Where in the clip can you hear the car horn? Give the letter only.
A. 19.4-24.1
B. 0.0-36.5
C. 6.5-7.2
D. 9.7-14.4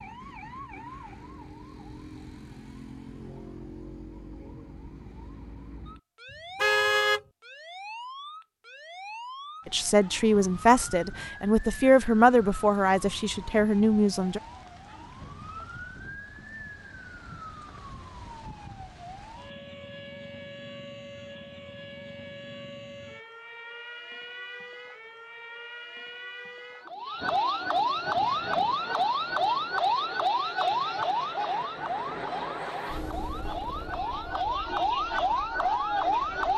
C.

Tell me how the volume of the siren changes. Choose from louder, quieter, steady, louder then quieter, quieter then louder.
louder.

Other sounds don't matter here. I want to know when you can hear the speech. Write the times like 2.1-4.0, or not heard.
9.7-14.4.